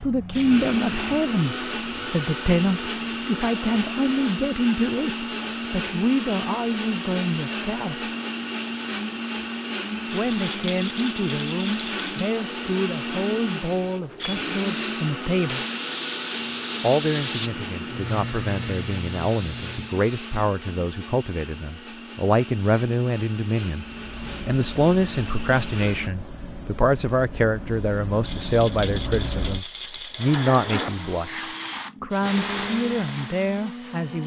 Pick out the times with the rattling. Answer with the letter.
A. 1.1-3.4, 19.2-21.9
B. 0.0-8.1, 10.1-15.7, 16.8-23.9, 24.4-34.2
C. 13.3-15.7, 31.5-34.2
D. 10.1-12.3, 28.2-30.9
D.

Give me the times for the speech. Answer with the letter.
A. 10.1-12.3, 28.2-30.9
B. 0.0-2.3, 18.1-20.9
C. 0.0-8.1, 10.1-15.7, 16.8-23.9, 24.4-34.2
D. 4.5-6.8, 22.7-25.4
C.